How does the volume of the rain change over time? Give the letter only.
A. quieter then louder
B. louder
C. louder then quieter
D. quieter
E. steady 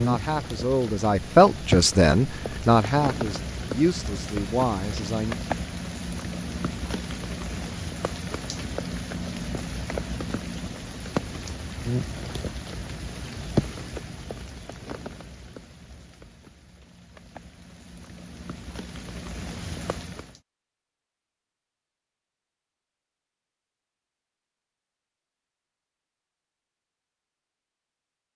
D.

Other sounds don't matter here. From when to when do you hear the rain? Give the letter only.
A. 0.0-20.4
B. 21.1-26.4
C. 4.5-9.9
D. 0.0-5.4
A.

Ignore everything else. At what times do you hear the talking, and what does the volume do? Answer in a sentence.
The talking can be heard from 0.0 to 5.4 s, getting louder then quieter.